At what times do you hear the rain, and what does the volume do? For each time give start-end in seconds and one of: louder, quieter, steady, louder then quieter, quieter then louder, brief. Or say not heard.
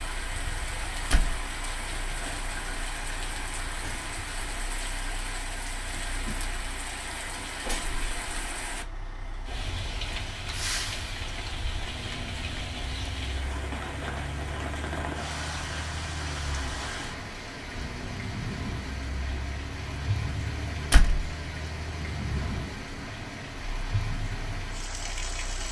0.0-25.6 steady.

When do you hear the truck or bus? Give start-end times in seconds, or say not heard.
0.0-25.6.